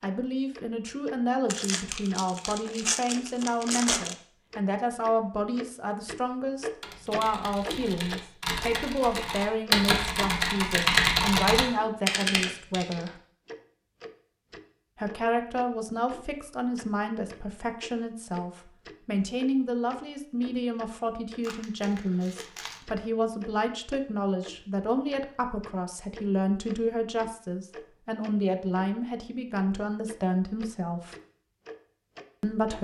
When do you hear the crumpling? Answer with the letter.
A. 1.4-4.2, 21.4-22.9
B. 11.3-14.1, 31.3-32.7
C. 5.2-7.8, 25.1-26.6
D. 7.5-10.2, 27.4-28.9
A.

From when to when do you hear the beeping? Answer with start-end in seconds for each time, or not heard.
not heard.